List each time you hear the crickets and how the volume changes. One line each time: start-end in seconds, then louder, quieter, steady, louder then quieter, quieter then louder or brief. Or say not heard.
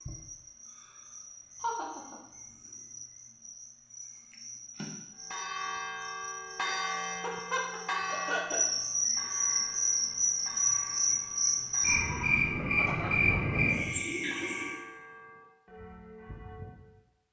0.0-14.8 louder.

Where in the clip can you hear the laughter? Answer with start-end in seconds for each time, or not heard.
1.6-2.1, 6.7-8.6, 12.8-13.8.